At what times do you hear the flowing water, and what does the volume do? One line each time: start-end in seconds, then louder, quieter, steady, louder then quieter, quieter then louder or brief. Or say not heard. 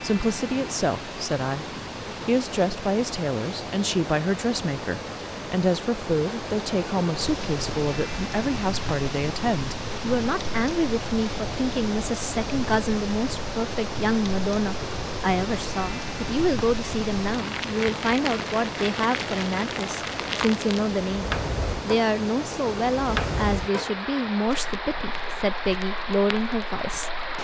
0.0-27.4 steady.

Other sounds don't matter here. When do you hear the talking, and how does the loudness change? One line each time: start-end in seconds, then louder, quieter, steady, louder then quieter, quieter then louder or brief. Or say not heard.
0.0-1.6 brief
2.2-27.4 steady.